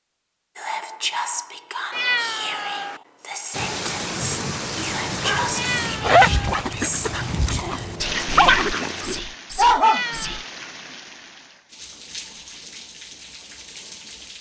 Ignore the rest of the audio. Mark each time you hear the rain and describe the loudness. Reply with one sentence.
The rain can be heard from 3.5 to 14.3 s, getting quieter.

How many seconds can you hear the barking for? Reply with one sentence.
You can hear the barking for 5 seconds altogether.